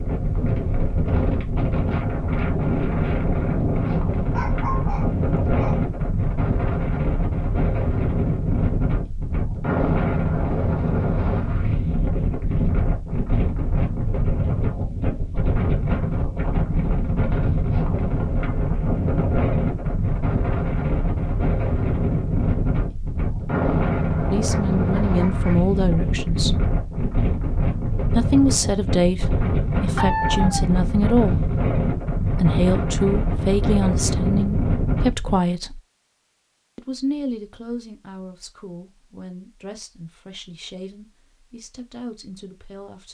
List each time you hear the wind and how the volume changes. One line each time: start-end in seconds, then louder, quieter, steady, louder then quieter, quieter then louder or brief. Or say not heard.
0.0-35.4 steady.